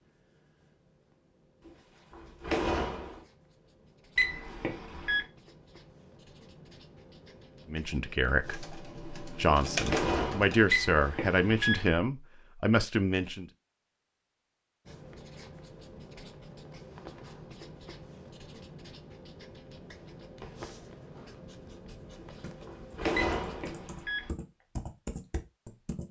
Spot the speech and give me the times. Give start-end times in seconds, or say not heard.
7.7-13.4.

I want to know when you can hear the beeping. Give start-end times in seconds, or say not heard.
4.2-5.2, 10.7-11.8, 23.1-24.3.